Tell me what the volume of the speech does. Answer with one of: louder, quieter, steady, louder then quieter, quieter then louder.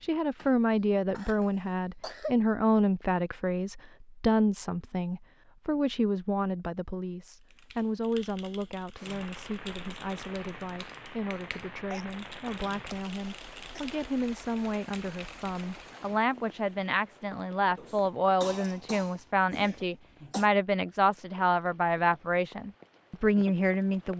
quieter then louder.